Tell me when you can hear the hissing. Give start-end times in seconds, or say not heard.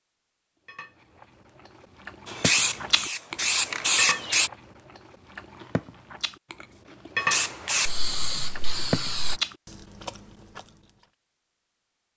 2.2-4.5, 7.2-9.4.